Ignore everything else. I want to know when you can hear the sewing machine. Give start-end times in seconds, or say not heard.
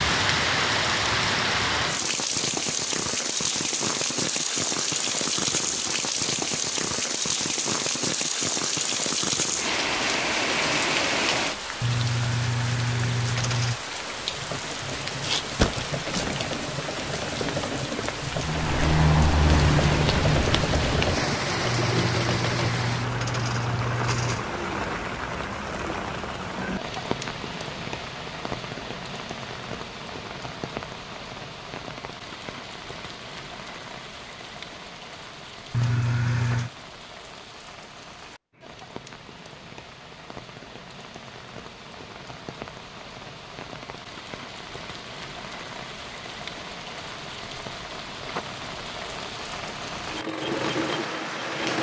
14.0-22.9, 50.0-51.7.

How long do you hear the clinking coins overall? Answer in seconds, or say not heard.
6 s.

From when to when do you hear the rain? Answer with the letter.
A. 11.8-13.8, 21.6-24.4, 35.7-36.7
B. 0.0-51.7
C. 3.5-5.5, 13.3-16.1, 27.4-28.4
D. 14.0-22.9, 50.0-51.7
B.